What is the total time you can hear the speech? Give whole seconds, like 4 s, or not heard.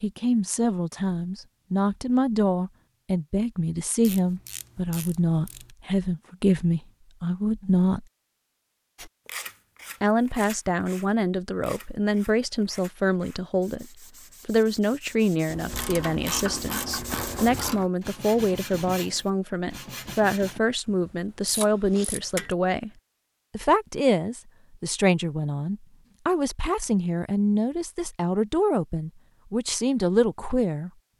28 s.